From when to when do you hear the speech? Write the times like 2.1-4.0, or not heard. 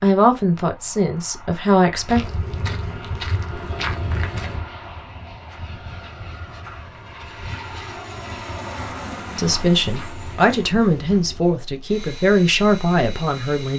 0.0-2.2, 9.3-13.7.